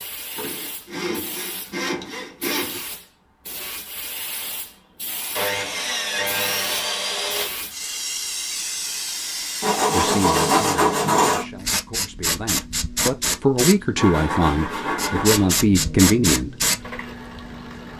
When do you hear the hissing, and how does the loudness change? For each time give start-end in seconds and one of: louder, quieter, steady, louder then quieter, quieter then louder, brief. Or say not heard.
0.0-17.9 louder.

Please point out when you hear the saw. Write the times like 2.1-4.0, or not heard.
0.3-2.9, 5.3-7.5, 9.6-11.4, 13.9-15.6.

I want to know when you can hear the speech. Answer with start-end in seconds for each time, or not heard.
9.9-16.6.